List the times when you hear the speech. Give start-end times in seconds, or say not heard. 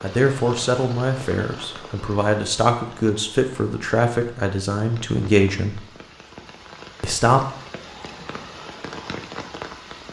0.0-5.8, 7.0-7.4.